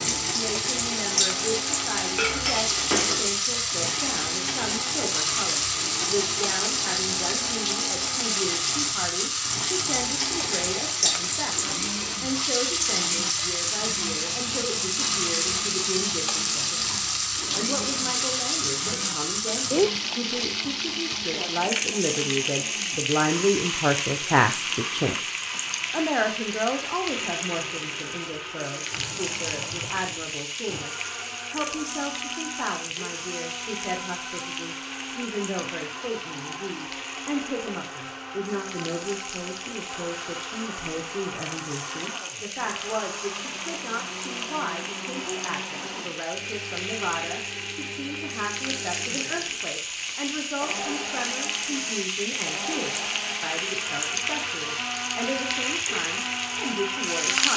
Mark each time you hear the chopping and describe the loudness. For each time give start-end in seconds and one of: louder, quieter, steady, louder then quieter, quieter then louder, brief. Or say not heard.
not heard.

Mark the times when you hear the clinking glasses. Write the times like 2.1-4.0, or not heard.
2.1-3.3.